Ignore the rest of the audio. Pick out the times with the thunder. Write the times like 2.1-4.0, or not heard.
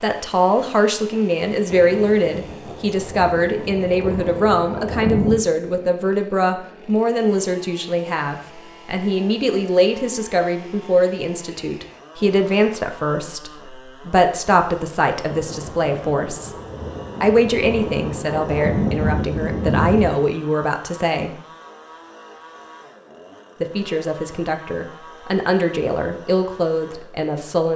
1.7-5.4, 15.2-20.1.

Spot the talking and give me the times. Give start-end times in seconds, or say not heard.
0.0-16.5, 17.2-21.3, 23.6-27.7.